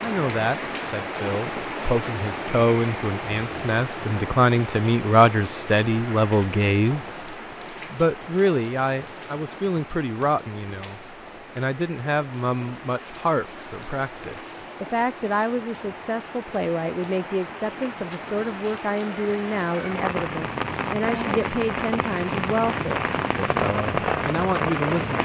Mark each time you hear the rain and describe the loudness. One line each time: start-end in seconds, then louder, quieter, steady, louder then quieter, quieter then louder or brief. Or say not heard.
0.0-25.2 quieter then louder.